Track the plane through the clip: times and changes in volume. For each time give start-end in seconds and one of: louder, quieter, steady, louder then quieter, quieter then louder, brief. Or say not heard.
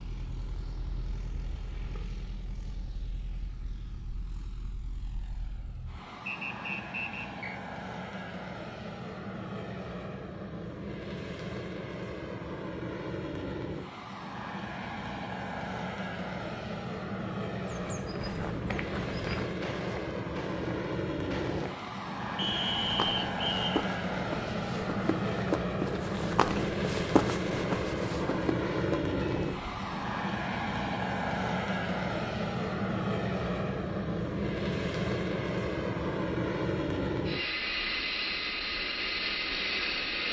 0.0-40.2 louder.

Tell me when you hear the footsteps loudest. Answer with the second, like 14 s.
27 s.